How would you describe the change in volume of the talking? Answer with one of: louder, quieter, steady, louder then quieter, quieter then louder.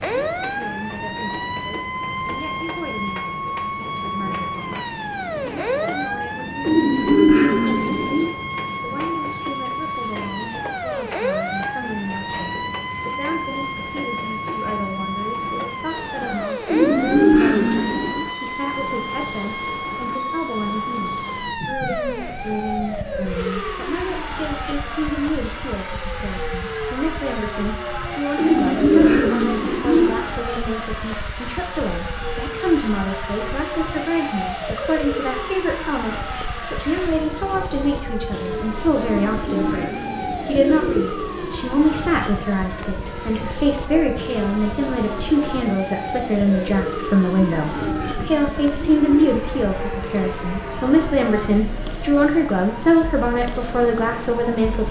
louder.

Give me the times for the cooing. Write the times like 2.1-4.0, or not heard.
6.6-8.3, 16.6-18.2, 28.4-30.2, 39.0-41.0, 47.3-49.3.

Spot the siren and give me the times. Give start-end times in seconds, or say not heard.
0.0-54.8.